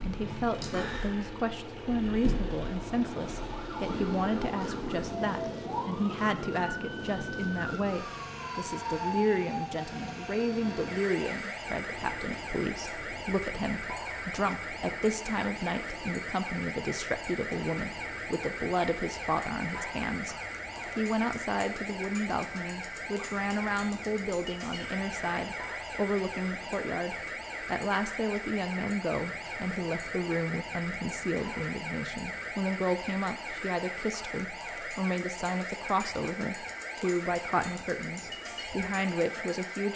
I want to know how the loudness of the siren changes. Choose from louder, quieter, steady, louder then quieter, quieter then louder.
steady.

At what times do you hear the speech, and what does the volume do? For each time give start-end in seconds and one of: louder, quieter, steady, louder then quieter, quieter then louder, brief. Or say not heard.
0.0-20.4 steady
20.9-39.9 steady.